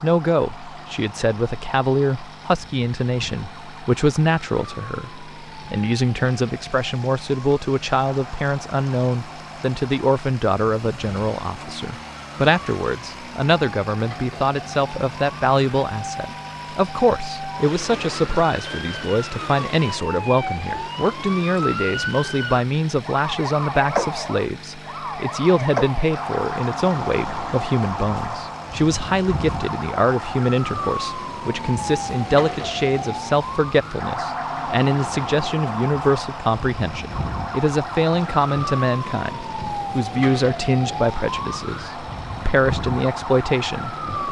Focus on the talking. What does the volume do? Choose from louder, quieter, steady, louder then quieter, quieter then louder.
steady.